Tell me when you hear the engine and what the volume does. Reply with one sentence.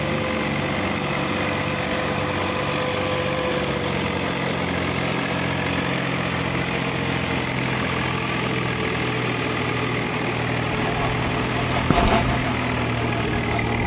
You can hear the engine from 0.0 to 13.8 s, at a steady volume.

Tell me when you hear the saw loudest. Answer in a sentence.
The volume of the saw peaks at 12 seconds.